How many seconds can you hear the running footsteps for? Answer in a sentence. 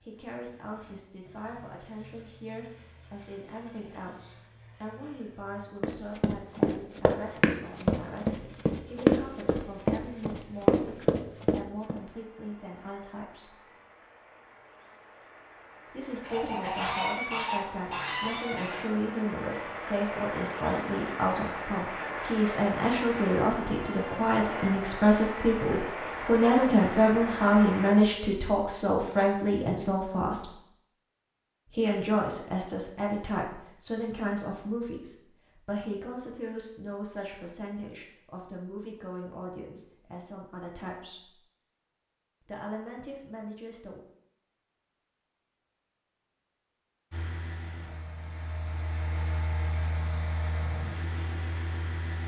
You can hear the running footsteps for 6 seconds altogether.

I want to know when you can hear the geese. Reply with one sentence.
You can hear the geese from 16.1 to 18.9 s.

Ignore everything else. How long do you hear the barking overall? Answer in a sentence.
You can't hear the barking here.